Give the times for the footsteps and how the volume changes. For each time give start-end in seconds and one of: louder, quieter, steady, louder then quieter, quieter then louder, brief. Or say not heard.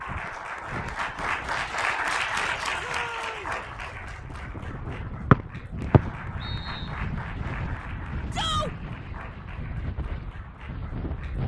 not heard.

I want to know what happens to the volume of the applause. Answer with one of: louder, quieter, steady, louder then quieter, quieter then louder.
quieter.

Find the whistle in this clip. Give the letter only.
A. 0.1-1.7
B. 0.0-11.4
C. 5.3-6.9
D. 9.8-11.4
C.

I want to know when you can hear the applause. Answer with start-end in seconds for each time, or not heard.
0.0-11.4.